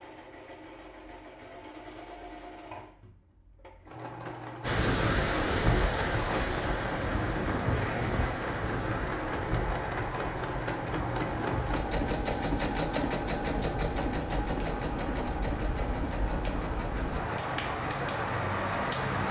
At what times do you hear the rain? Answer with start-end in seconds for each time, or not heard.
4.6-19.2.